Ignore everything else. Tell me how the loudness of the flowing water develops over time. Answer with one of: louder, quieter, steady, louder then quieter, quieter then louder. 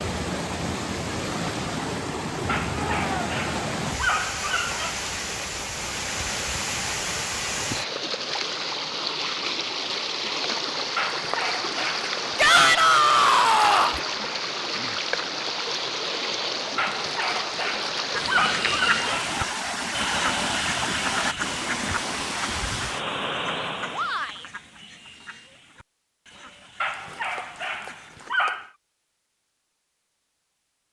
steady.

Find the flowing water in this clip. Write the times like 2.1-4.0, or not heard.
0.0-24.2.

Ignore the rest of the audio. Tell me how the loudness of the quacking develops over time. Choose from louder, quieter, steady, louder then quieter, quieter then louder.
quieter.